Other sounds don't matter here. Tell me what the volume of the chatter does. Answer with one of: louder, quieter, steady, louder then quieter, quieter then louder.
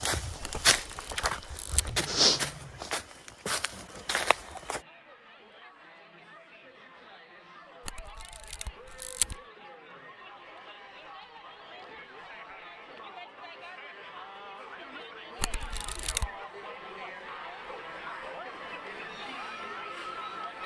louder.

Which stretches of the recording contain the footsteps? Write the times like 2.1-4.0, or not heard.
0.0-4.8.